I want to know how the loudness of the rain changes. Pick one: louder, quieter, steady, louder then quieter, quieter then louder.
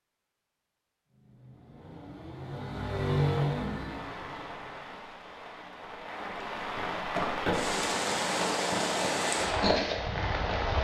louder.